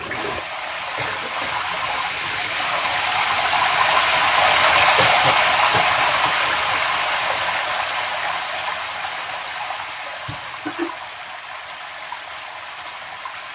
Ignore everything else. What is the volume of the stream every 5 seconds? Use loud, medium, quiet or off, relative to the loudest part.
loud, loud, quiet.